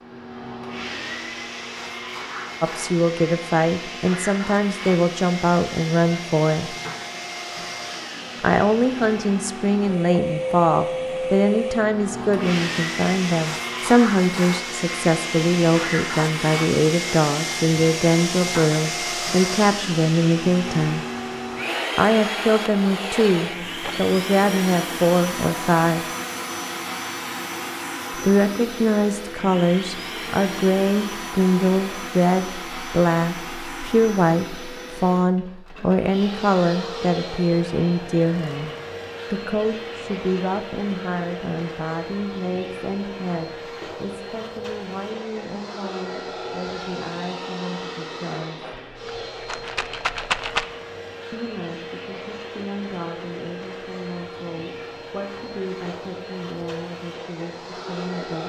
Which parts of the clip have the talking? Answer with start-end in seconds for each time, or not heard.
2.6-6.8, 8.3-21.1, 21.9-26.1, 28.1-38.7, 39.3-48.8, 51.3-58.4.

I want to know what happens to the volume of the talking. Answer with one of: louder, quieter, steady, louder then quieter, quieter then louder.
quieter.